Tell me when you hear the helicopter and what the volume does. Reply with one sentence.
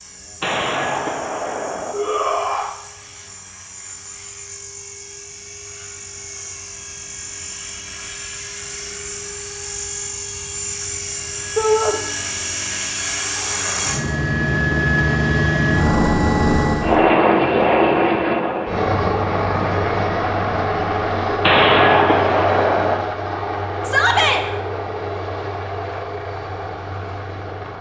The helicopter can be heard from 0.0 to 27.7 s, getting louder then quieter.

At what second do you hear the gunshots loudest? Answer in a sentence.
The volume of the gunshots peaks at 22 seconds.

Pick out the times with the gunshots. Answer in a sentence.
You can hear the gunshots from 0.4 to 1.9 s and from 21.4 to 22.9 s.